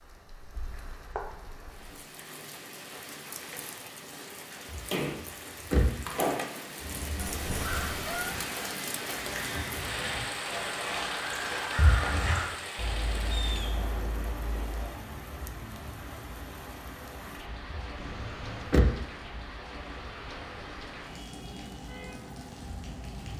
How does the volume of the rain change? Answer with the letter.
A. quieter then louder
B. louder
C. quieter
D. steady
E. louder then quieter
E.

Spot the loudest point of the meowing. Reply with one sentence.
The loudest moment of the meowing is at 8 seconds.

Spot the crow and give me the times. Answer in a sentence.
You can hear the crow from 6.8 to 14.9 s.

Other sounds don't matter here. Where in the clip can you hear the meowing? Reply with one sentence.
The meowing can be heard from 7.2 to 8.4 s and from 17.9 to 18.8 s.